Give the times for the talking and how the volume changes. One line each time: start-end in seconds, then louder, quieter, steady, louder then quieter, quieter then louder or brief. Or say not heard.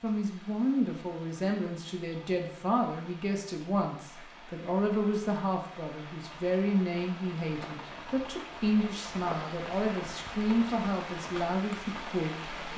0.0-12.7 steady.